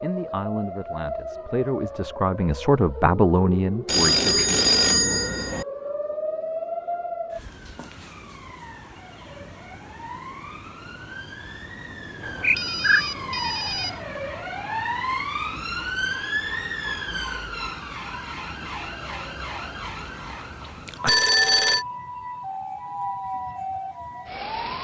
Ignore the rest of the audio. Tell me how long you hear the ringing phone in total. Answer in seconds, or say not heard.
4 s.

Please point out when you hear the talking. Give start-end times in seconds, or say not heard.
0.0-4.5.